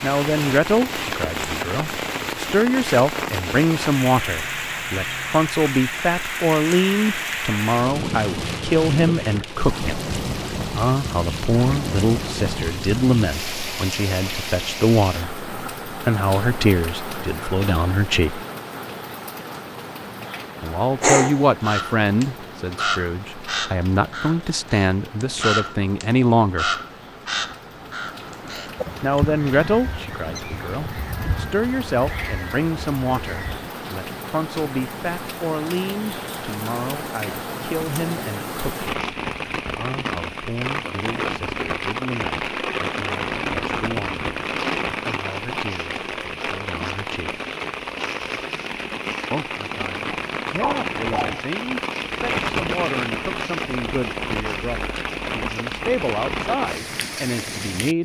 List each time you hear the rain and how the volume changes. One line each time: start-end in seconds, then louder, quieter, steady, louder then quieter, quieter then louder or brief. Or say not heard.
0.0-58.0 quieter then louder.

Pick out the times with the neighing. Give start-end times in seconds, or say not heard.
not heard.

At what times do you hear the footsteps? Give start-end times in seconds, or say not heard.
not heard.